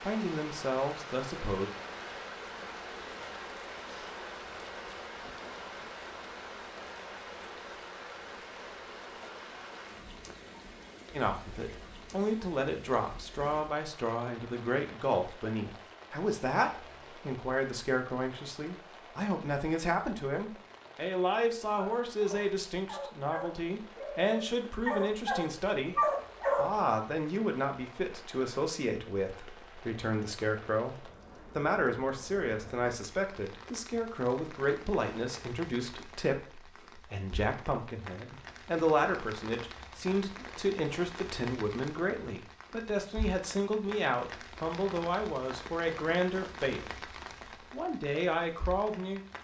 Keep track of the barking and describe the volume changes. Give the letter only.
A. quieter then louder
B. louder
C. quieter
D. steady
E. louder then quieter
B.